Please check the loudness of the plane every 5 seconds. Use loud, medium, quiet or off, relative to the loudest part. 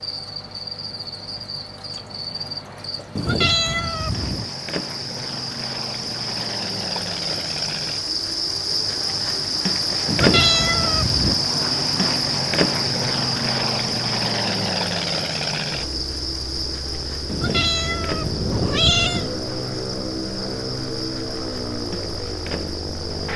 quiet, medium, loud, loud, loud.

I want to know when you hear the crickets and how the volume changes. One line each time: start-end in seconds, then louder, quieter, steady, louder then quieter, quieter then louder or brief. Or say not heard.
0.0-23.3 louder then quieter.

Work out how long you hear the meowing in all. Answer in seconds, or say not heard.
5 s.